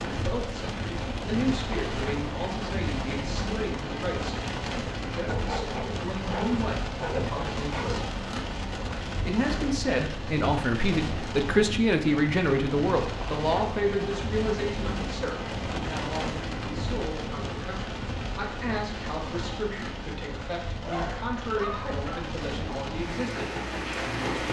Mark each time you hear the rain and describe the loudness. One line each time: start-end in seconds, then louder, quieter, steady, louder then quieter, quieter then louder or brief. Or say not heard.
0.0-24.4 steady.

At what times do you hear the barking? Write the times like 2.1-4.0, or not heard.
5.2-8.1, 20.8-22.4.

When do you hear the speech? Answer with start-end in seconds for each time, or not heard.
0.0-7.9, 9.2-24.4.